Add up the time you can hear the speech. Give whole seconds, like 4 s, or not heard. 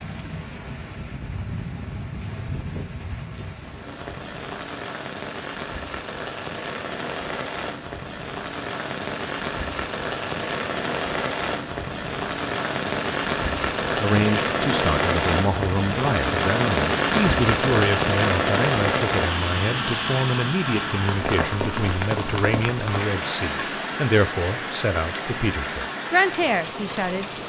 13 s.